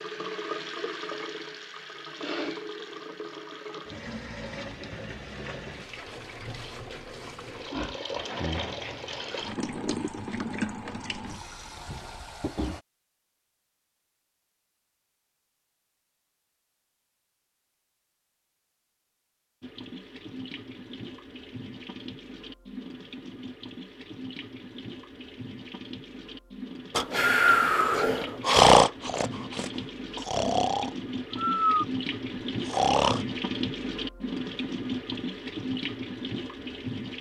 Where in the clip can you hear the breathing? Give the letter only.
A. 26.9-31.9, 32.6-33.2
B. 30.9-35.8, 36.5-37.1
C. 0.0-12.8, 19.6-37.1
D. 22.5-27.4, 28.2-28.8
A.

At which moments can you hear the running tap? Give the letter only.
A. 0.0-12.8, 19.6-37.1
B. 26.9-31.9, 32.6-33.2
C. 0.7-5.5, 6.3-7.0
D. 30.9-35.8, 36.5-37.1
A.